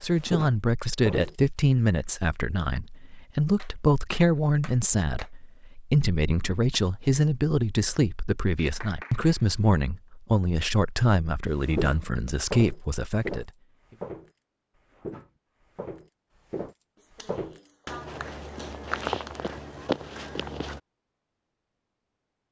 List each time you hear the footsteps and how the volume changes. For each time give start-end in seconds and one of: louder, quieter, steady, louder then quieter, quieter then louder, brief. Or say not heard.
0.1-1.4 brief
11.6-20.8 quieter then louder.